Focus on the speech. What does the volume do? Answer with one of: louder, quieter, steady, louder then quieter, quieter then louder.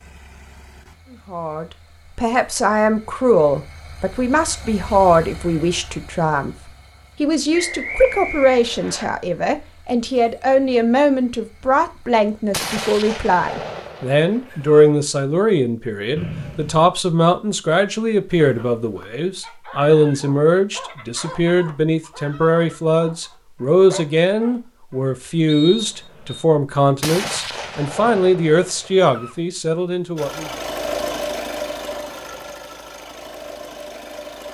steady.